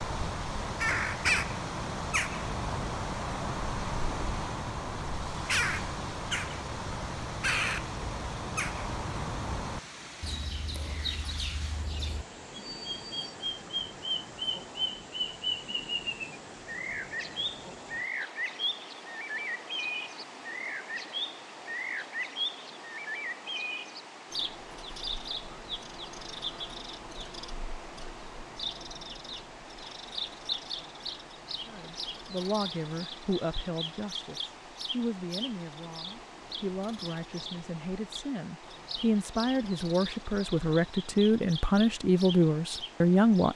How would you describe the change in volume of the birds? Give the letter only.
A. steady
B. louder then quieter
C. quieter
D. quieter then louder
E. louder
C.